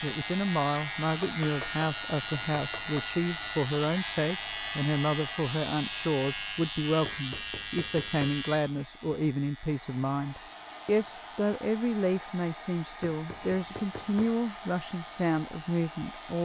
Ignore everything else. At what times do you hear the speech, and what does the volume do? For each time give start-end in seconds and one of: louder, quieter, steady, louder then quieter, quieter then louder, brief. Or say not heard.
0.0-16.4 steady.